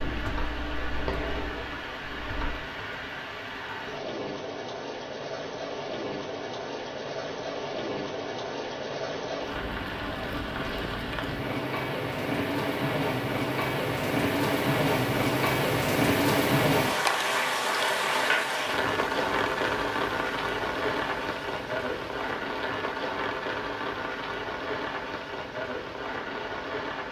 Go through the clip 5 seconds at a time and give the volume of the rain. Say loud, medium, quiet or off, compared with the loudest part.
medium, medium, loud, loud, medium, medium.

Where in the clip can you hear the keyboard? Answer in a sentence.
You can hear the keyboard from 0.0 to 2.7 s.